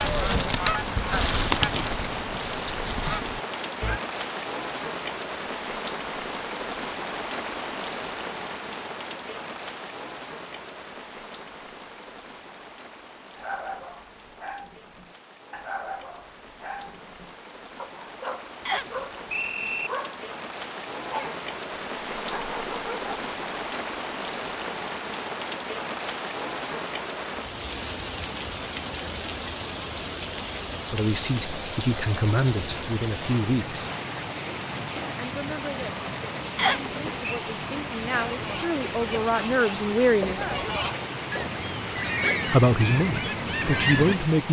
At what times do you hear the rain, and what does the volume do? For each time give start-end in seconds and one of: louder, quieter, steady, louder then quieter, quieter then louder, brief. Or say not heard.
0.0-44.4 quieter then louder.